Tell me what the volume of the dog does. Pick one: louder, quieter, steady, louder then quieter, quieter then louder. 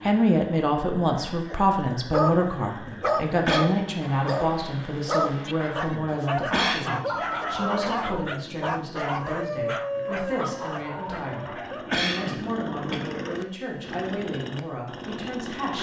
quieter.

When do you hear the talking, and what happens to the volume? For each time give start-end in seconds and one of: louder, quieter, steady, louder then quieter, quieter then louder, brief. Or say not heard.
0.0-15.7 quieter.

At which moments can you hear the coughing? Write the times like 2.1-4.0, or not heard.
2.9-3.6, 5.9-7.2, 11.3-12.9.